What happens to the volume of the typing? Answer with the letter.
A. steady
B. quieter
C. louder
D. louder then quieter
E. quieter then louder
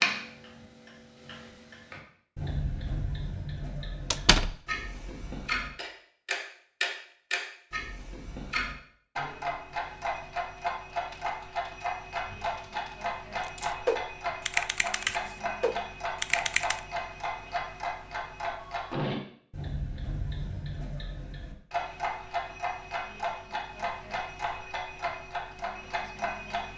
C.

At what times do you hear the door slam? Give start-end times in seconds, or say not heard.
4.1-4.5.